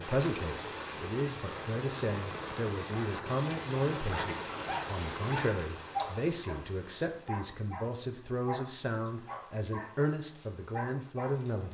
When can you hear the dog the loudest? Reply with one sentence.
The loudest moment of the dog is at 6 seconds.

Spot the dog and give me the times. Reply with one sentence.
The dog can be heard from 4.1 to 11.6 s.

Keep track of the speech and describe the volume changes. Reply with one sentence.
The loudness of the speech stays about the same.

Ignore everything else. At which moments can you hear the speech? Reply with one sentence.
You can hear the speech from 0.0 to 11.7 s.